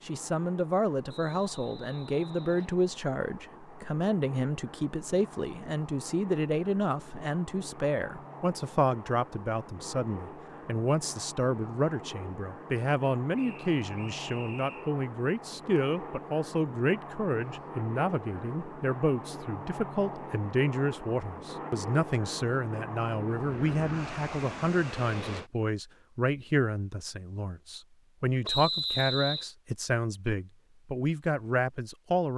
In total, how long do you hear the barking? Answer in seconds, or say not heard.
not heard.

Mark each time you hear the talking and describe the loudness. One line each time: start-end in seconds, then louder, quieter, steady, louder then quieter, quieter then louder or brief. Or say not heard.
0.0-32.3 steady.